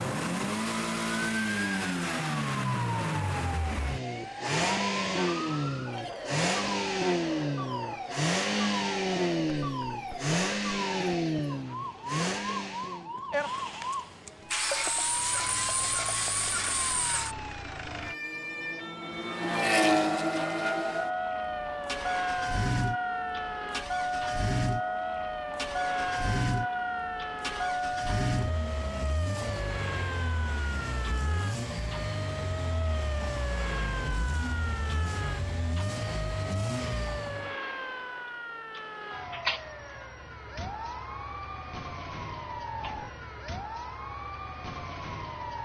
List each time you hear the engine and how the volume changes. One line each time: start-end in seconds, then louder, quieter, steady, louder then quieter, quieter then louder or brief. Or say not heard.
0.0-37.5 quieter.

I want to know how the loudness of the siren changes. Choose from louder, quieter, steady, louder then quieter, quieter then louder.
steady.